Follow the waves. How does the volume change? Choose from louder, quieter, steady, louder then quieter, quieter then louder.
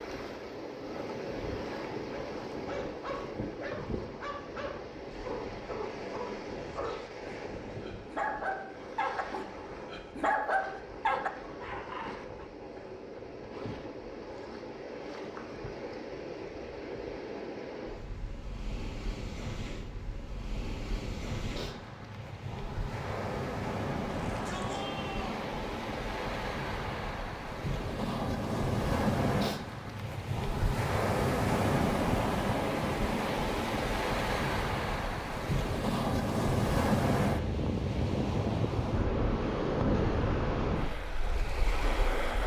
louder.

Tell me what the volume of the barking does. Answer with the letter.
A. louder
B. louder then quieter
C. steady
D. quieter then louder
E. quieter
A.